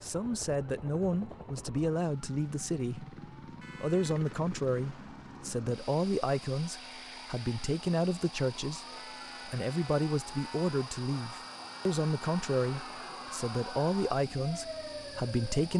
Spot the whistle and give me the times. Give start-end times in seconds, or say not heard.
not heard.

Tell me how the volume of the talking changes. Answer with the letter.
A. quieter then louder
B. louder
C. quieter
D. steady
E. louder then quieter
D.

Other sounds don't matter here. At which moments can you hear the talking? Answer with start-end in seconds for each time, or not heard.
0.0-3.1, 3.8-8.8, 9.4-15.7.